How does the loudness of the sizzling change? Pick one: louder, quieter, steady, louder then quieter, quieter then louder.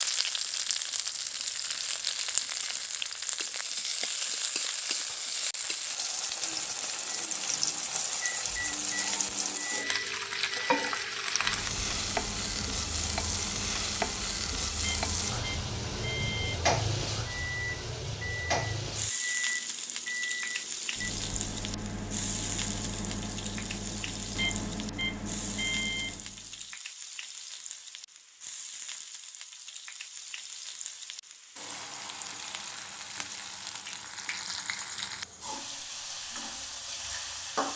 quieter.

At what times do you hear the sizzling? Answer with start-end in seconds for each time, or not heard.
0.0-37.7.